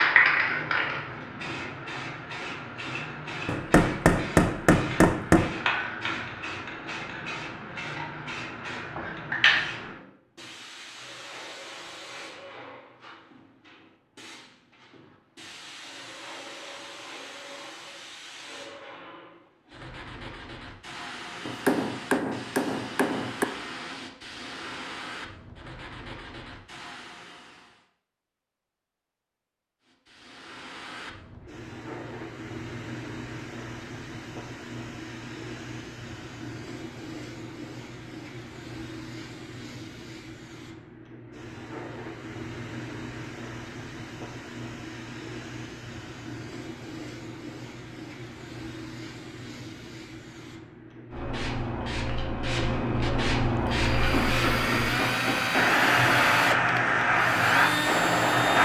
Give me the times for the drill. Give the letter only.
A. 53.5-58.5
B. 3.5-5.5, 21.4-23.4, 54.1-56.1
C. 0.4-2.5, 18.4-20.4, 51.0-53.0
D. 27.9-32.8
A.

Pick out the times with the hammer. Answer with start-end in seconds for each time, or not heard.
3.5-5.5, 21.4-23.4, 54.1-56.1.